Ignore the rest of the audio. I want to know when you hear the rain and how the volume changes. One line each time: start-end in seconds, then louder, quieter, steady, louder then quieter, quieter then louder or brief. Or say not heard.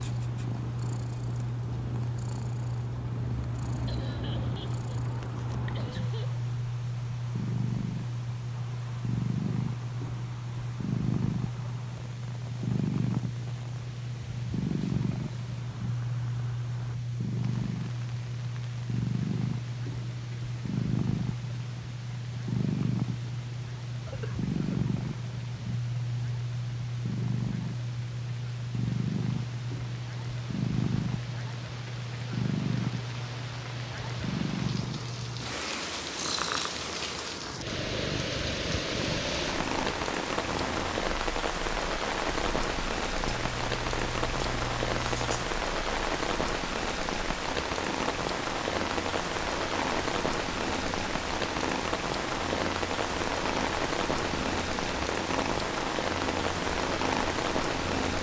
0.0-58.1 louder.